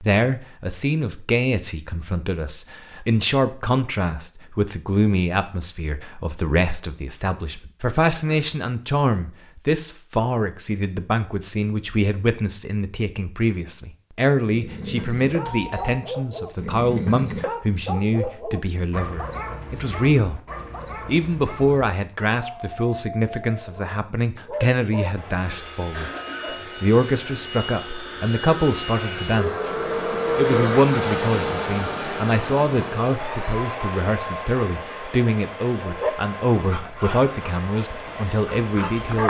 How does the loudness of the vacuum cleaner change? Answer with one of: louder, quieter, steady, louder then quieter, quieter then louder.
louder then quieter.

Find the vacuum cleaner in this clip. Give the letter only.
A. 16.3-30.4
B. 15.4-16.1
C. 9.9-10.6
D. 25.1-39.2
D.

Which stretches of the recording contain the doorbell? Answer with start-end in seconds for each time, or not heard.
15.4-16.1.